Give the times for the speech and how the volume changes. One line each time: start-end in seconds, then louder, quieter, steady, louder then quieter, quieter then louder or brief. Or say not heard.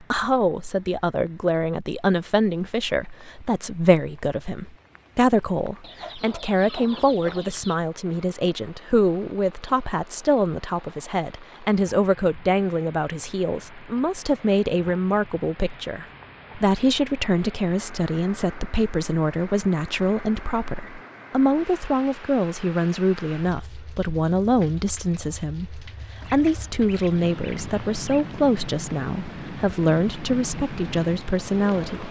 0.0-32.0 steady.